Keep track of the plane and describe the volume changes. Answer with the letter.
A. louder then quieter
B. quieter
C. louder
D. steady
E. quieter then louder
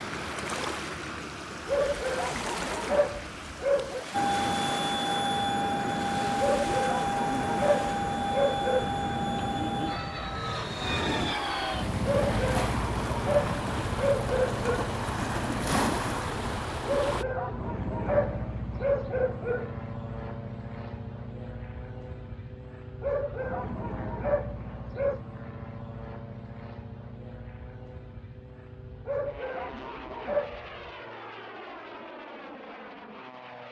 B.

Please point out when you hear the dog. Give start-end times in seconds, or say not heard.
1.6-4.0, 6.3-8.9, 12.1-14.9, 16.9-19.7, 23.0-25.2, 29.1-30.9.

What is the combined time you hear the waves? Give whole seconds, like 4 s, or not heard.
17 s.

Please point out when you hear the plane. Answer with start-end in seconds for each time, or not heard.
4.1-33.6.